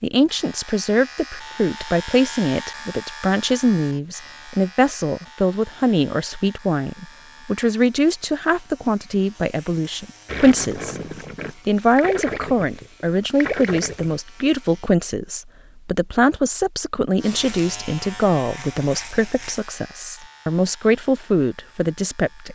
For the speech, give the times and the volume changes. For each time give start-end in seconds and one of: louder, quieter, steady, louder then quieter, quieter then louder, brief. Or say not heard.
0.0-10.9 steady
11.7-22.4 steady.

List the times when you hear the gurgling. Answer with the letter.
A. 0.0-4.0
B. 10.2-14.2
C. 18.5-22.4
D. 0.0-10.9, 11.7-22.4
B.